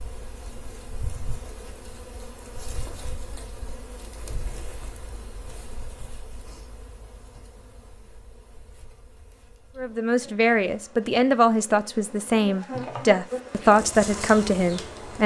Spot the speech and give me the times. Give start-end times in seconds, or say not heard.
9.8-15.2.